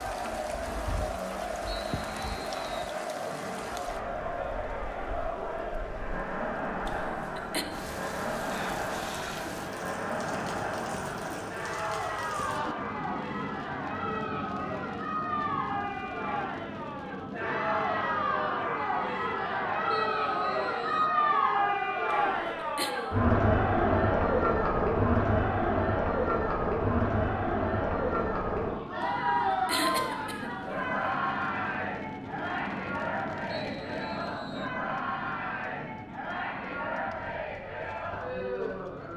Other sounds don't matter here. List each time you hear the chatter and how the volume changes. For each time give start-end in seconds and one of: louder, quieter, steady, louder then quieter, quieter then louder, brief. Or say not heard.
0.0-39.1 louder then quieter.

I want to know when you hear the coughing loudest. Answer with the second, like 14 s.
30 s.